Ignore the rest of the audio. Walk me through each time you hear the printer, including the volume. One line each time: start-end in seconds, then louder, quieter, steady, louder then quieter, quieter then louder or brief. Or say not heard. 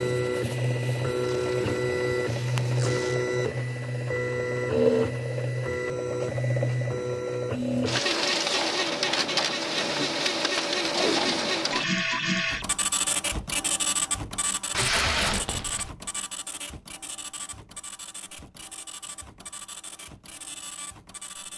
0.0-21.5 quieter.